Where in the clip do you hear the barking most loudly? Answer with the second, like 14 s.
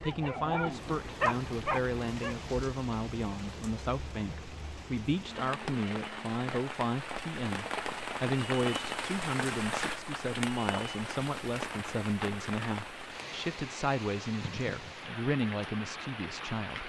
1 s.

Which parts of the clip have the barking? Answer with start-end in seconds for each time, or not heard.
0.0-2.4.